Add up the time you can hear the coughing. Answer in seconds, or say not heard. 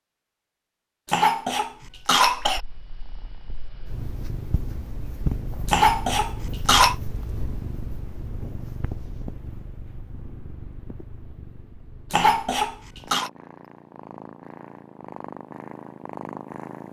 4 s.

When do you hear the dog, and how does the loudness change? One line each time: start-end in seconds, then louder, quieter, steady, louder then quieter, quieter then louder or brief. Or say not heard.
not heard.